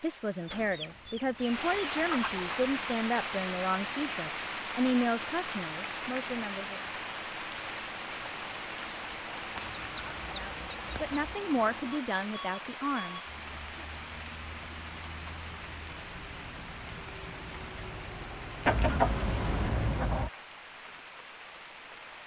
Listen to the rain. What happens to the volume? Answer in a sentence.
The loudness of the rain goes down.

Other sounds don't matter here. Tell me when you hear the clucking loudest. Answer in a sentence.
The loudest moment of the clucking is at 19 seconds.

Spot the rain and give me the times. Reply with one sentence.
You can hear the rain from 0.0 to 22.2 s.